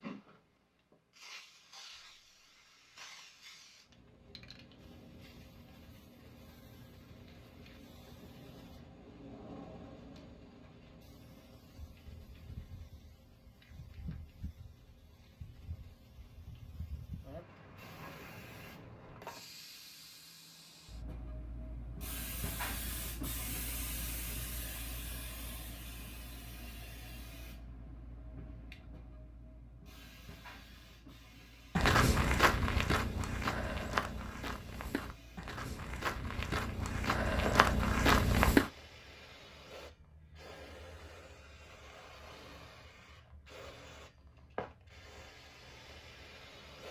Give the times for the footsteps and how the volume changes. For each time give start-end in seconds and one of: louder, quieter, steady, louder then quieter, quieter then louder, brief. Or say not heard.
31.8-38.7 quieter then louder.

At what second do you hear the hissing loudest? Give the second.
23 s.